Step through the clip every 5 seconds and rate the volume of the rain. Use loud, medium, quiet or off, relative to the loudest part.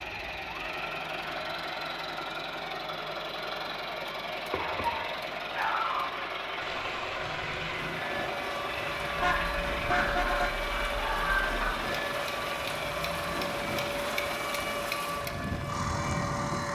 off, medium, loud, loud.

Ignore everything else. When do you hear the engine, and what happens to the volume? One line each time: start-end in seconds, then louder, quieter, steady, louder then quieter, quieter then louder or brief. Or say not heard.
0.0-16.7 steady.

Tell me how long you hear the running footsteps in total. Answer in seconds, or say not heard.
not heard.